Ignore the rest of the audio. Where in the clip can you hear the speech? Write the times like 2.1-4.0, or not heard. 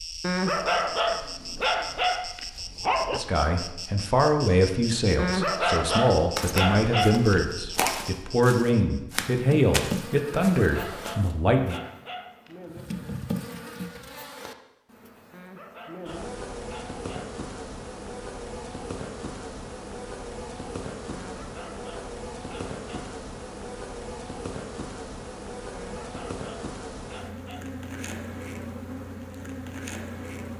3.1-11.8.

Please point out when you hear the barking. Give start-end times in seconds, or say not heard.
0.2-3.2, 5.2-8.0, 10.6-12.6, 15.3-17.4, 21.1-23.1, 25.7-27.7.